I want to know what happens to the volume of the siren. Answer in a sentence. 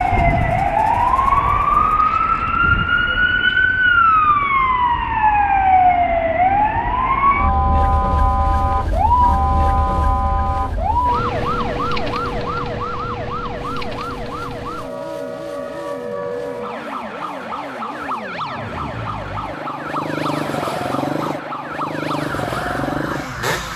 The volume of the siren goes down.